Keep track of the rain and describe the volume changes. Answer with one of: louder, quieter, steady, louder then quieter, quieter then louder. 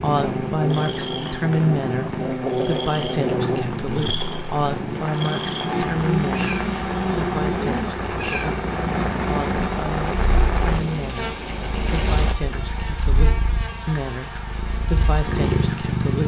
louder.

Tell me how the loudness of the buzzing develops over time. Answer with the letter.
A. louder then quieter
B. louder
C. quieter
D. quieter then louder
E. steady
C.